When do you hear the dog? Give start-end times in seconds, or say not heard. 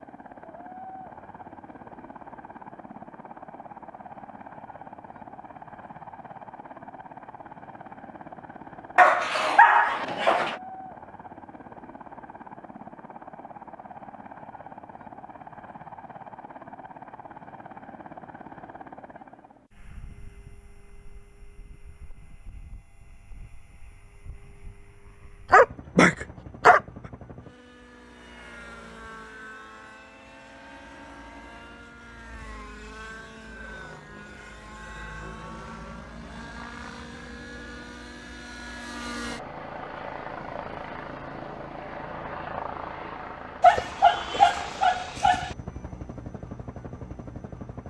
8.9-10.6, 25.5-26.8, 43.6-45.5.